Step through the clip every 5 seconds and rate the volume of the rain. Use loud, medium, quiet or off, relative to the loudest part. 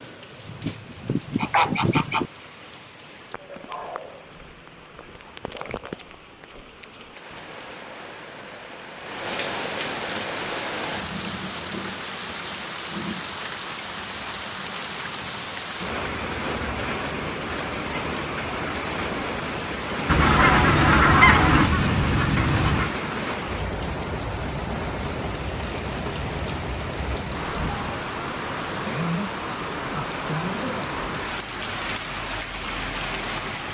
quiet, medium, loud, loud, loud, loud, loud.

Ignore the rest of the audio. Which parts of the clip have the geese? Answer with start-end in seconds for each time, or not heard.
0.5-2.3, 20.1-22.9.